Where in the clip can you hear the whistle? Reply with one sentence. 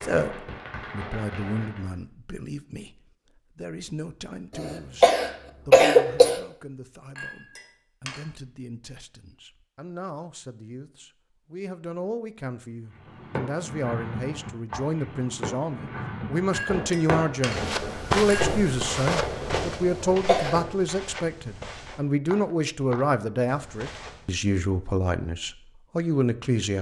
The whistle can't be heard in this clip.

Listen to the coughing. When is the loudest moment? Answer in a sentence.
The volume of the coughing peaks at 6 seconds.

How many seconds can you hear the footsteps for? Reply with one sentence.
The footsteps can be heard for 7 seconds in total.